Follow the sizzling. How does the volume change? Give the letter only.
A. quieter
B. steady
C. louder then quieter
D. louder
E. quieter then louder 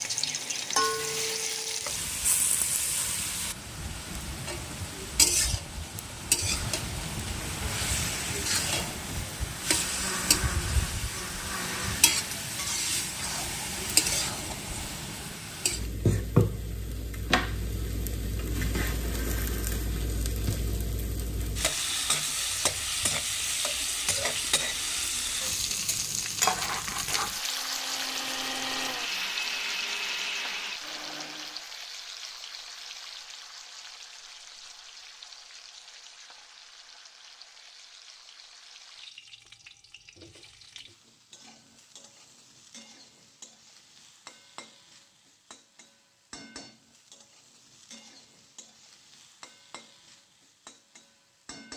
A.